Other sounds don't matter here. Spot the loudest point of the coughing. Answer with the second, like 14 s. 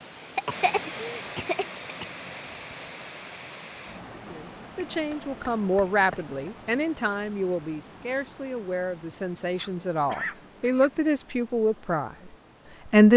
1 s.